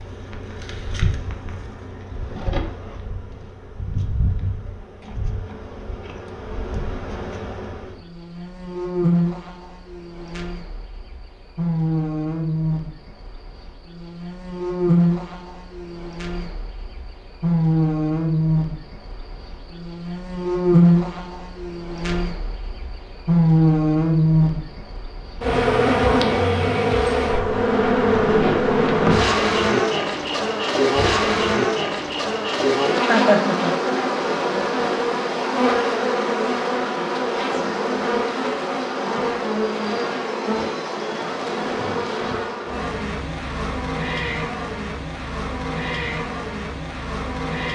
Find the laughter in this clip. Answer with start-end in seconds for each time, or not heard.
33.0-33.8.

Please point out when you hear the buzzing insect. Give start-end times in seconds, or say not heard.
0.0-47.7.